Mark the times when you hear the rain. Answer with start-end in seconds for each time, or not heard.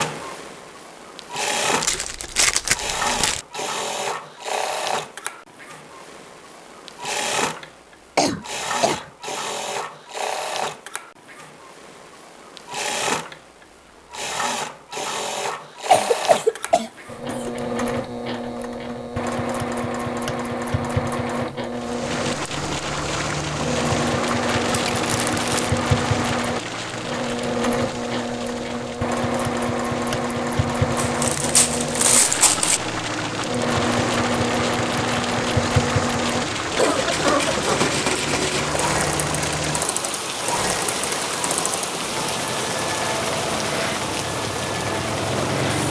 21.7-45.8.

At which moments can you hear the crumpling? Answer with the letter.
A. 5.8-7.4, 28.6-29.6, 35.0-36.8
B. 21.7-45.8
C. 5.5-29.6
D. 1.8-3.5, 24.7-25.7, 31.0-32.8
D.